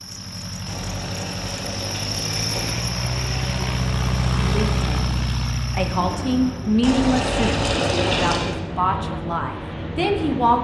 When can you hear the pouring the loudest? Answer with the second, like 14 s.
8 s.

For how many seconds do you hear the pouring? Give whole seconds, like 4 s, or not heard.
4 s.